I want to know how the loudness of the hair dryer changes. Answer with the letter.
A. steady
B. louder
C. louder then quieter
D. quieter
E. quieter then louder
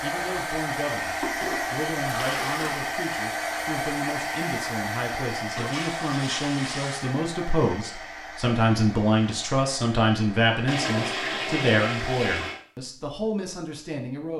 D.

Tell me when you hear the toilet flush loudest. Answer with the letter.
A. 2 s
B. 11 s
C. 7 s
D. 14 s
B.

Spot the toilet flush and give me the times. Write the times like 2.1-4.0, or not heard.
1.2-2.9, 5.5-7.2, 10.7-12.6.